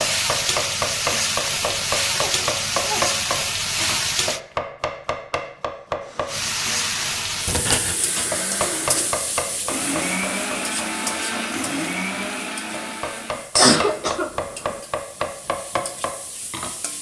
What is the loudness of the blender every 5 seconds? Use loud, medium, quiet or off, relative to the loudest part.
off, medium, loud, off.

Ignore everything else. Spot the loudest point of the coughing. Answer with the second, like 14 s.
14 s.